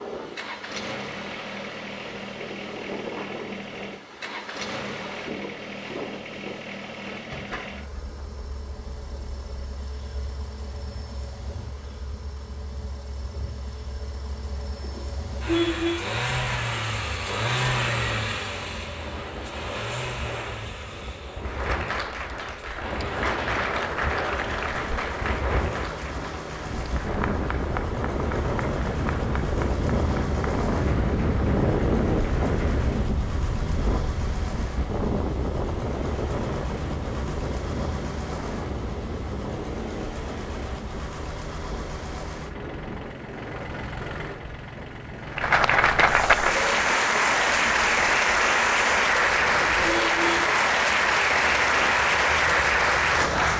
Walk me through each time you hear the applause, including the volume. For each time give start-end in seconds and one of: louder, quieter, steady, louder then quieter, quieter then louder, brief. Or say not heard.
21.4-33.0 quieter
45.3-53.5 steady.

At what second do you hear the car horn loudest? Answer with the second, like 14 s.
16 s.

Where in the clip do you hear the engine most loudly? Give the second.
18 s.